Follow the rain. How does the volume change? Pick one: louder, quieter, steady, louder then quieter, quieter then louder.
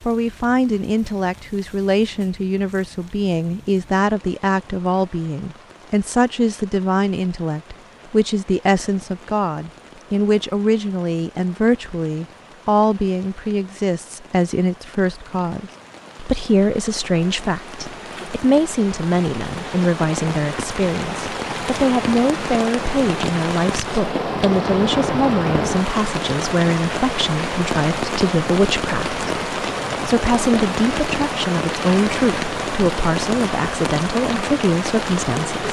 louder.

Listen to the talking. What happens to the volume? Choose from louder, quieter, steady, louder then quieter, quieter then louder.
steady.